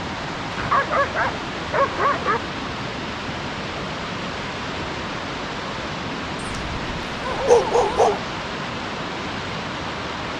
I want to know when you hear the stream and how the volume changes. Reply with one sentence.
The stream can be heard from 0.0 to 10.3 s, at a steady volume.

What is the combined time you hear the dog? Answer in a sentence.
You can hear the dog for 4 seconds altogether.